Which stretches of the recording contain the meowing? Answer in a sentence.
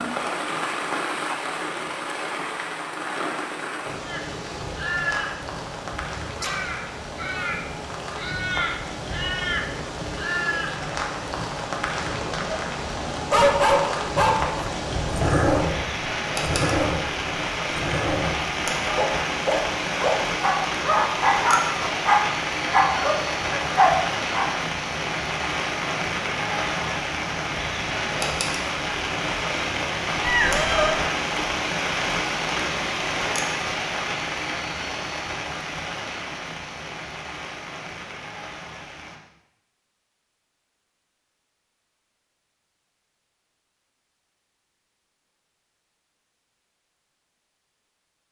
You can hear the meowing from 30.2 to 31.0 s.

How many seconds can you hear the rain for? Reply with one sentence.
The rain can be heard for 39 seconds in total.